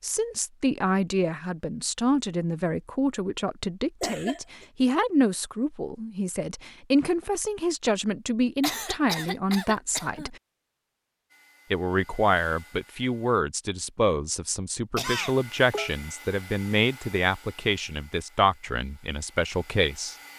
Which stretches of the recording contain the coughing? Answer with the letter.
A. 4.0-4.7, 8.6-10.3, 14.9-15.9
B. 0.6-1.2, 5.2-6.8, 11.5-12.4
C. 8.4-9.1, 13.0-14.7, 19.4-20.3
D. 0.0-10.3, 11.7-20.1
A.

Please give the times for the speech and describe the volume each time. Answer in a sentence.
The speech can be heard from 0.0 to 10.3 s, at a steady volume; and from 11.7 to 20.1 s, at a steady volume.